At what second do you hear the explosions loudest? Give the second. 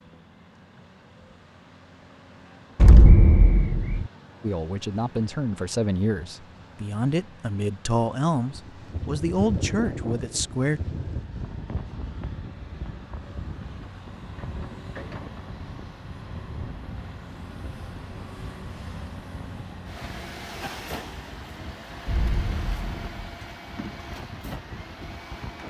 3 s.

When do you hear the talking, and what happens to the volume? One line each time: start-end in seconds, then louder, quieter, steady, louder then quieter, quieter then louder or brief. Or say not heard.
4.4-10.8 steady.